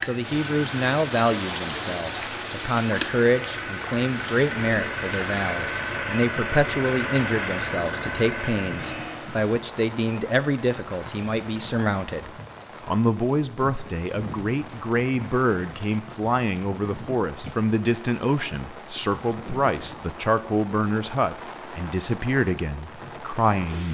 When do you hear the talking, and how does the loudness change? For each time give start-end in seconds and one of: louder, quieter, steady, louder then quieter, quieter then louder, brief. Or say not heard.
0.0-23.8 steady.